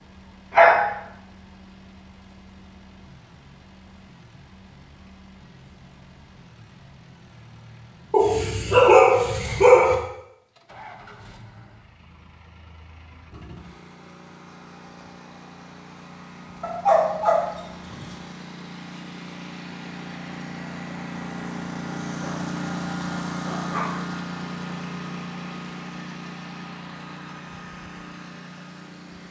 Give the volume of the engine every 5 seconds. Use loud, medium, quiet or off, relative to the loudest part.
quiet, quiet, quiet, medium, loud, medium.